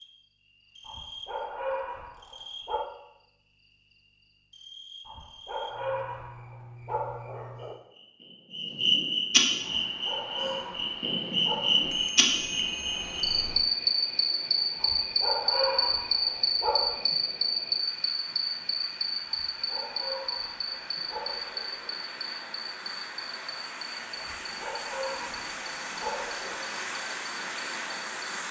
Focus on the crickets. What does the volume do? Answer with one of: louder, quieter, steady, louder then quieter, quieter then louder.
louder then quieter.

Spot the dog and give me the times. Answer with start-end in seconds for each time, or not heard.
0.8-2.9, 5.0-7.8, 9.8-12.0, 14.8-17.1, 19.2-21.9, 24.1-26.6.